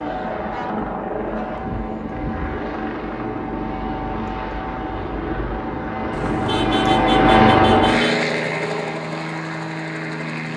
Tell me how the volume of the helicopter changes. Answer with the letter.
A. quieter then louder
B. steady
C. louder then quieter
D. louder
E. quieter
C.